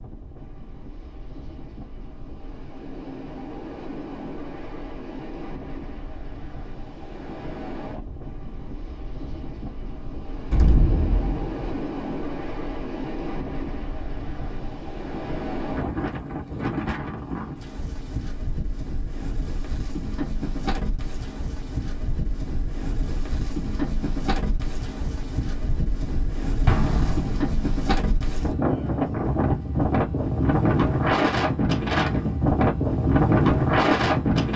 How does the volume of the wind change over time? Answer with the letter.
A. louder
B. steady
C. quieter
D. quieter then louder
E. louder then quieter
A.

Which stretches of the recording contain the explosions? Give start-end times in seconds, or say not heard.
10.5-11.8, 26.6-27.5.